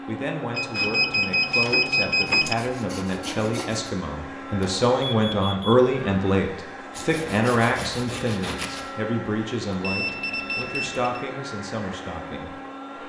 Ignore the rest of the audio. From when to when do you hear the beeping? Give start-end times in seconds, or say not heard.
0.6-2.5, 4.6-5.8, 9.7-11.2.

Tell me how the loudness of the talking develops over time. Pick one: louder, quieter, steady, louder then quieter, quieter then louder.
louder then quieter.